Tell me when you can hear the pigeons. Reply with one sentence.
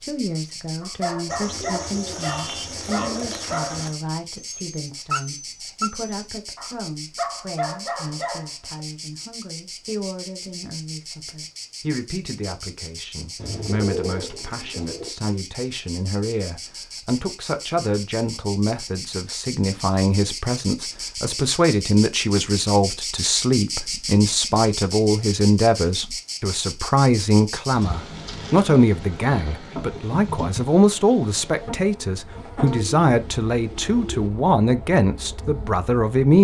You can hear the pigeons from 1.3 to 4.0 s, from 13.3 to 15.1 s and from 32.6 to 34.3 s.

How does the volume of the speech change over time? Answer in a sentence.
The loudness of the speech goes up.